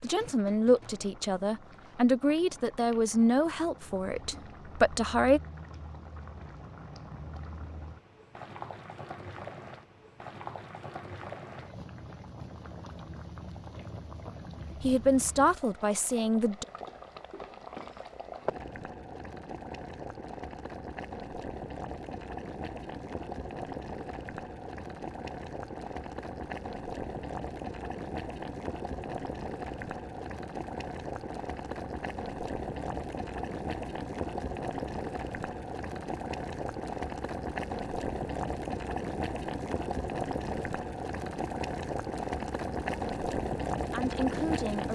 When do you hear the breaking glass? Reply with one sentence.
You can't hear the breaking glass here.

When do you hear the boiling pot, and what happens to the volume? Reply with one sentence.
You can hear the boiling pot from 0.0 to 44.9 s, getting louder.